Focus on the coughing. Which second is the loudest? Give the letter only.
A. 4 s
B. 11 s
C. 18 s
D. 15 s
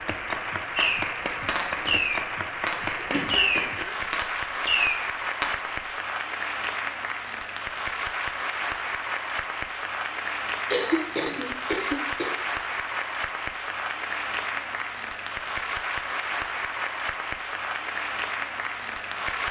B.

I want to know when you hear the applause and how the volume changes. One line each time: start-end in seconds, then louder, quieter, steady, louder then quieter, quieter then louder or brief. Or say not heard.
0.0-19.4 steady.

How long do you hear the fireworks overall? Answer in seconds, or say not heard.
5 s.